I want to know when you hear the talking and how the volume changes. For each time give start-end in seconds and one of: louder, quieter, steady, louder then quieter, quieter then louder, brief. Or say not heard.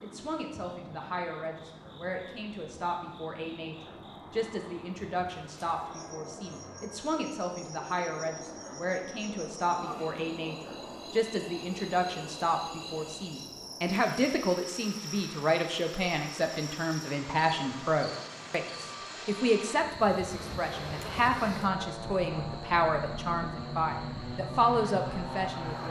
0.0-25.8 louder.